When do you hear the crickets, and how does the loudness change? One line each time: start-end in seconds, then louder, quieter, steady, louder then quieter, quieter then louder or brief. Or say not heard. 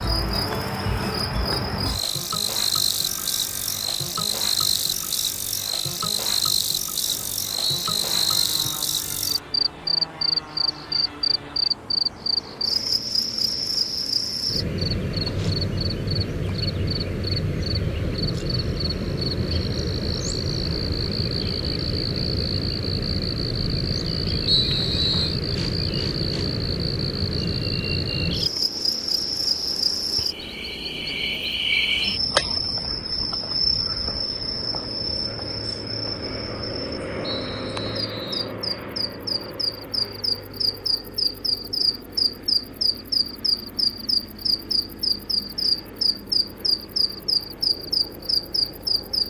0.0-49.2 steady.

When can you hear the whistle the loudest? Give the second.
25 s.